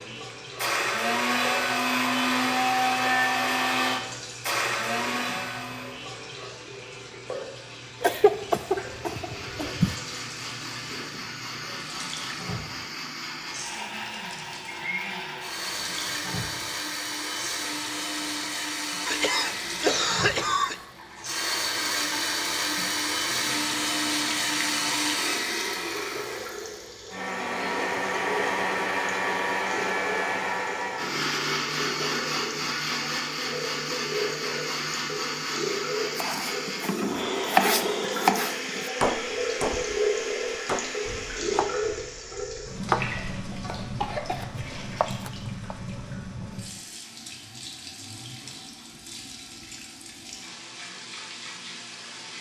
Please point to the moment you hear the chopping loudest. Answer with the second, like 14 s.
38 s.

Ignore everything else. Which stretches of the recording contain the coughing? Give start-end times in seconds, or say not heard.
8.0-9.9, 19.1-20.8, 43.5-44.5.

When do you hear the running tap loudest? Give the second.
40 s.